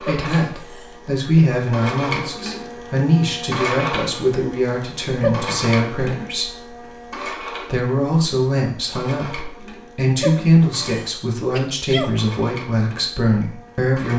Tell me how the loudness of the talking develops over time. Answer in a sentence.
The loudness of the talking stays about the same.